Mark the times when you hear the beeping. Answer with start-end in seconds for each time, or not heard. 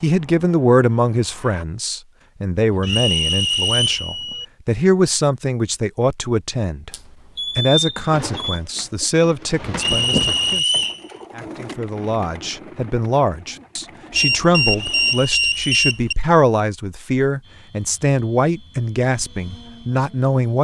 2.7-4.5, 6.9-8.6, 14.2-16.1.